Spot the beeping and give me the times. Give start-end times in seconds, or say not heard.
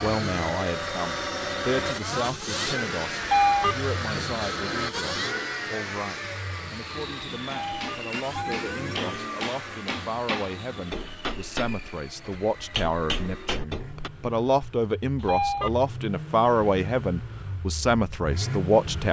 3.2-3.9, 7.5-8.7, 15.2-15.8.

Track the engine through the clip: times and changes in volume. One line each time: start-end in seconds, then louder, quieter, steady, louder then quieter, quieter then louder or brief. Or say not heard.
0.0-19.0 quieter then louder.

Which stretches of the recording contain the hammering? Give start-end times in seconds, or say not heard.
7.5-14.1.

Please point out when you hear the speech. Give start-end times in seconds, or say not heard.
0.0-19.0.